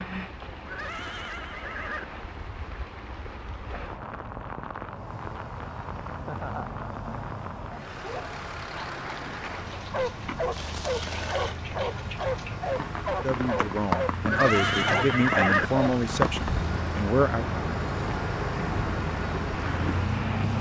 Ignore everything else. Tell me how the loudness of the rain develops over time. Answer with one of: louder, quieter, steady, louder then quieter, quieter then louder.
louder.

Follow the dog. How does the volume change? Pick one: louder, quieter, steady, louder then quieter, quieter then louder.
steady.